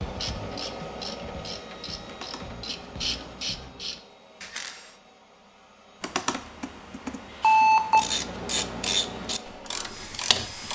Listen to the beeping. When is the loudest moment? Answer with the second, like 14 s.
8 s.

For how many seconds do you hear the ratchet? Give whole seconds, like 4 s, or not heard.
8 s.